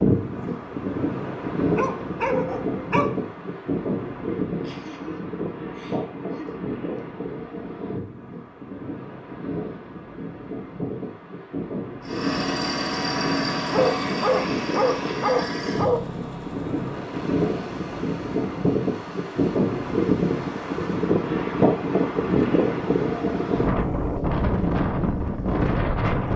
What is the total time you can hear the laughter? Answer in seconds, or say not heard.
2 s.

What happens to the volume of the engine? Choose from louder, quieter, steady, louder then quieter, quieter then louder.
quieter.